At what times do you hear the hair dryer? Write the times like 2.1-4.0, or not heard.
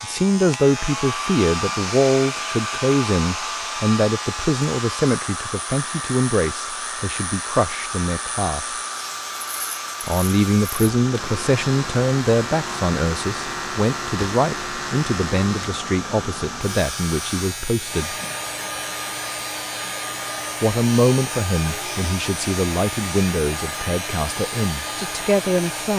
0.0-25.9.